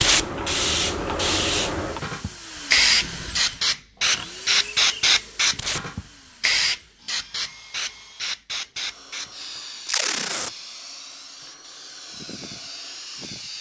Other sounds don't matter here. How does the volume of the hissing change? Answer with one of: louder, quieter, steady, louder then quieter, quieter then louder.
quieter.